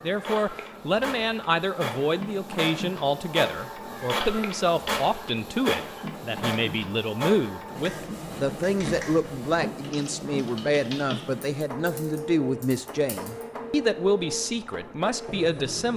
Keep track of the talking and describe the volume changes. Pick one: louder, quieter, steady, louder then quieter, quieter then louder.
steady.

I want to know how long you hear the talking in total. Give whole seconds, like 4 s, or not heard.
16 s.